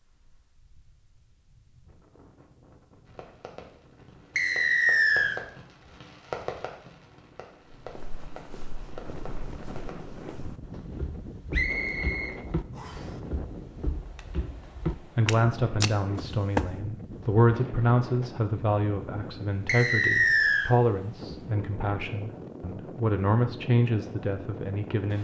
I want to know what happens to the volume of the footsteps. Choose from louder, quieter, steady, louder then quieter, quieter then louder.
louder.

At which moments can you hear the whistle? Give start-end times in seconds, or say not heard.
4.3-5.3, 11.5-13.1, 19.6-20.7.